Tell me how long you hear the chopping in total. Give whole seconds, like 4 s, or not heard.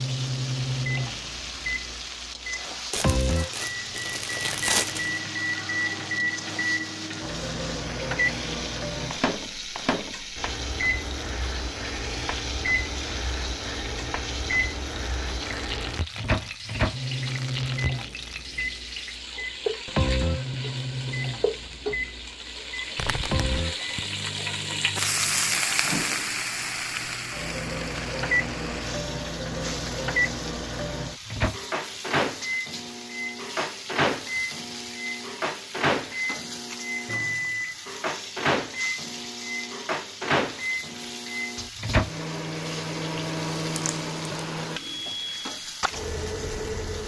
not heard.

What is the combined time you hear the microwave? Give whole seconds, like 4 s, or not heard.
47 s.